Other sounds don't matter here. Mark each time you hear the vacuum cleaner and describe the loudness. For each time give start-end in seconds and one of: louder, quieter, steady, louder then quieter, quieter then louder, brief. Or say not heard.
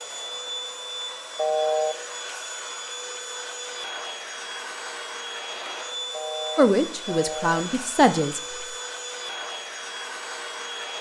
0.0-10.9 steady.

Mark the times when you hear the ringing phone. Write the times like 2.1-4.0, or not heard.
1.4-1.9, 6.1-7.7.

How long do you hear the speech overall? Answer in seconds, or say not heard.
2 s.